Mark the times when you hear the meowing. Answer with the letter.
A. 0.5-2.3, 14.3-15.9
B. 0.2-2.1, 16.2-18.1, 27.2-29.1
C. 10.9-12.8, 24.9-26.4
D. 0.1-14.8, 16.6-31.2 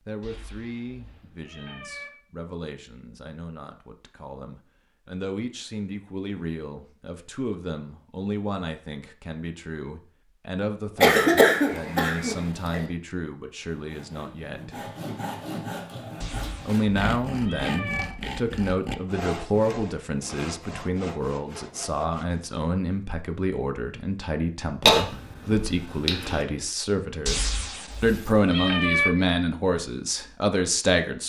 B.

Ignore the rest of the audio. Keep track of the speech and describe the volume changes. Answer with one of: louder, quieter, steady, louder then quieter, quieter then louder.
louder.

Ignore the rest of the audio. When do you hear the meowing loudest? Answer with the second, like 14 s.
29 s.